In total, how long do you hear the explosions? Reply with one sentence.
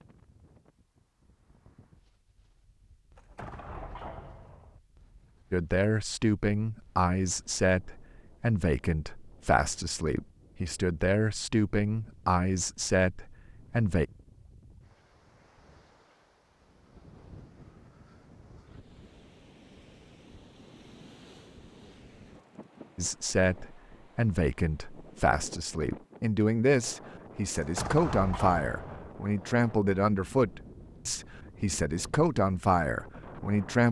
You can hear the explosions for 3 seconds altogether.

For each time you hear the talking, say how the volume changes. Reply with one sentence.
You can hear the talking from 5.5 to 14.1 s, at a steady volume; and from 22.9 to 33.8 s, at a steady volume.